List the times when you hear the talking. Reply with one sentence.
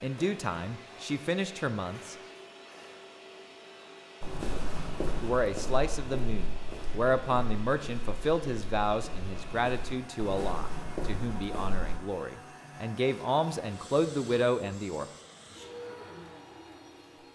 The talking can be heard from 0.0 to 2.1 s and from 5.2 to 15.1 s.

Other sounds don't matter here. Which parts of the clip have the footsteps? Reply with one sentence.
The footsteps can be heard from 4.2 to 12.0 s.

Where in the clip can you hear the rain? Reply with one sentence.
You can't hear the rain here.